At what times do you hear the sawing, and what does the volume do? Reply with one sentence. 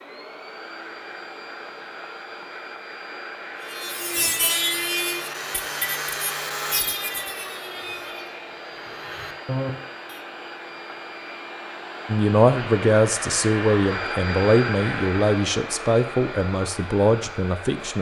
The sawing can be heard from 3.6 to 10.2 s, getting quieter then louder.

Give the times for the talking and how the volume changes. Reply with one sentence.
You can hear the talking from 12.1 to 17.9 s, at a steady volume.